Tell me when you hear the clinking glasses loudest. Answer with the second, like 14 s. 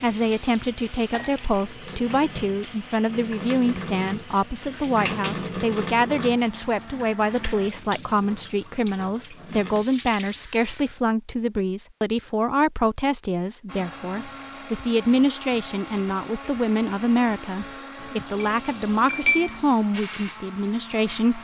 19 s.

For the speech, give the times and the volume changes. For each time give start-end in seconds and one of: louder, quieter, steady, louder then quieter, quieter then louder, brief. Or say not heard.
0.0-21.4 steady.